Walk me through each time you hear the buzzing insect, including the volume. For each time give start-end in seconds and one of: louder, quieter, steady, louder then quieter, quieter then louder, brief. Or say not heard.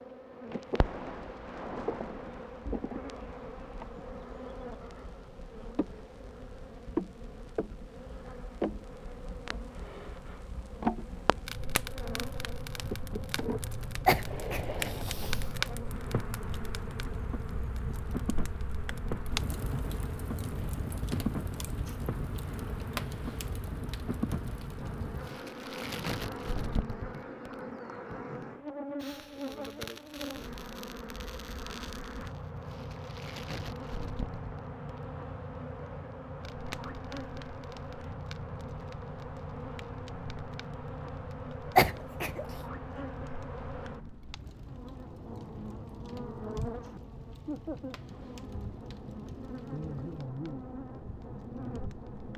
0.0-52.3 steady.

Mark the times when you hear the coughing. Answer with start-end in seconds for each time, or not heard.
14.1-15.4, 41.8-42.5.